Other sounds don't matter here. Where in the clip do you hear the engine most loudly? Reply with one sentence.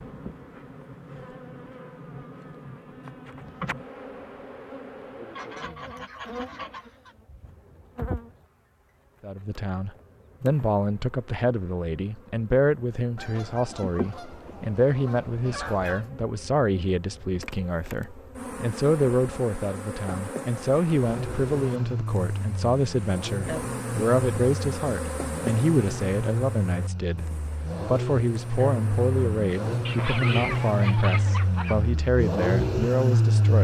The loudest moment of the engine is at 33 seconds.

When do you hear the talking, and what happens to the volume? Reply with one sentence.
You can hear the talking from 9.2 to 33.5 s, at a steady volume.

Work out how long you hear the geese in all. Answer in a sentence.
You can hear the geese for 7 seconds altogether.